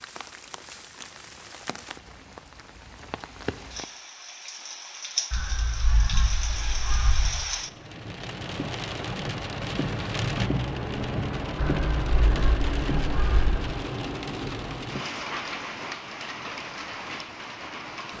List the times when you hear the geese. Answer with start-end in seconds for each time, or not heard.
5.3-7.3, 11.6-13.6.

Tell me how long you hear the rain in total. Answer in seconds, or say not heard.
18 s.